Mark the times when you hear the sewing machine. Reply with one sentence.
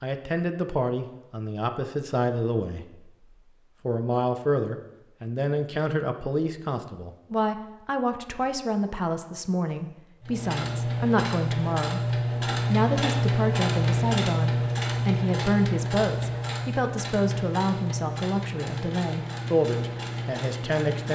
The sewing machine can be heard from 10.2 to 21.0 s.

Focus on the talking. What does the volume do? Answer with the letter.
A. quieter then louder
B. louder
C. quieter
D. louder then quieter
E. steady
E.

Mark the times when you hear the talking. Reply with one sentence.
You can hear the talking from 0.0 to 3.1 s and from 3.9 to 21.0 s.